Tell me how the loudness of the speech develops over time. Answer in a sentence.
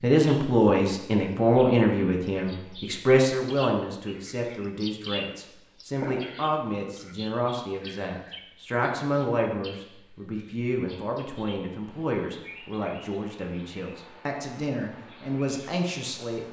The loudness of the speech goes down.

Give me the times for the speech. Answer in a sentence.
You can hear the speech from 0.0 to 16.4 s.